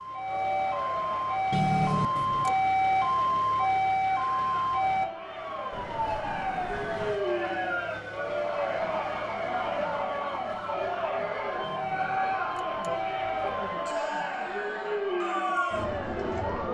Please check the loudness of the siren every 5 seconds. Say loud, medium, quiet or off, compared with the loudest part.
loud, medium, medium, medium.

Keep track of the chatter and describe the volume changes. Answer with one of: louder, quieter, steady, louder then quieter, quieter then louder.
louder.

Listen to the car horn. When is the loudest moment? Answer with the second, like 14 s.
2 s.